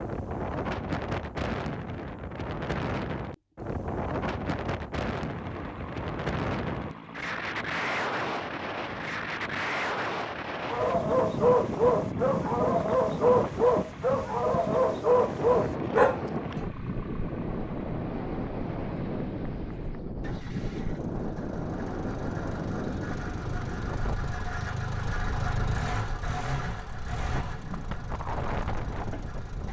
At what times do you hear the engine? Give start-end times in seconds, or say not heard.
5.2-29.6.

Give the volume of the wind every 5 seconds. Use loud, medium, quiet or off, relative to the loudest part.
loud, loud, loud, loud, loud, medium.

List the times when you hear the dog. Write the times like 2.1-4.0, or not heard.
10.7-16.2.